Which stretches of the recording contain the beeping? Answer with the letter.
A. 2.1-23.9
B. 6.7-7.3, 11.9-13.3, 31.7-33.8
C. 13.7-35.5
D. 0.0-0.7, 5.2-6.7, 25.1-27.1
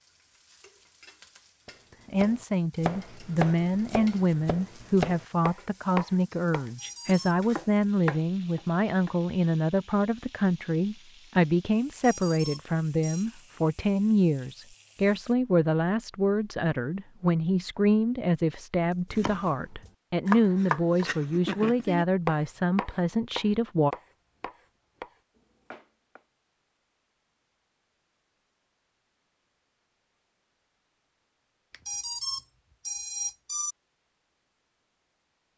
B.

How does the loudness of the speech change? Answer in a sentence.
The loudness of the speech stays about the same.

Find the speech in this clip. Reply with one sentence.
The speech can be heard from 2.1 to 23.9 s.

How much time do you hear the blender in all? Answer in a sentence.
You can't hear the blender here.